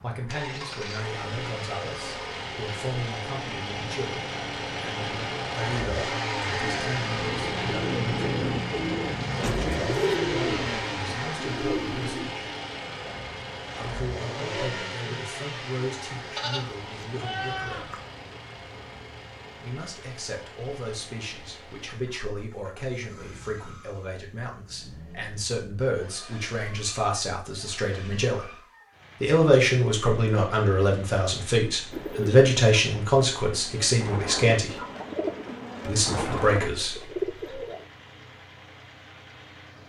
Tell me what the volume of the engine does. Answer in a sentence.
The loudness of the engine goes down.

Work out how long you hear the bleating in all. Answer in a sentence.
The bleating can be heard for 2 seconds in total.